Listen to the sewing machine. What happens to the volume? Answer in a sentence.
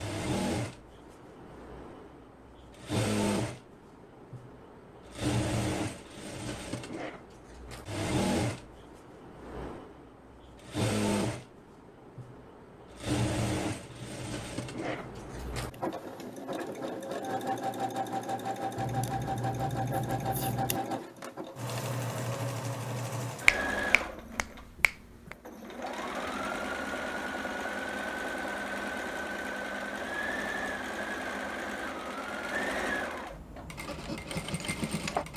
The volume of the sewing machine stays about the same.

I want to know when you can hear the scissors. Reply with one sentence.
The scissors can be heard from 13.8 to 15.8 s and from 18.8 to 20.8 s.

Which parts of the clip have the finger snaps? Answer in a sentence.
The finger snaps can be heard from 23.4 to 25.4 s.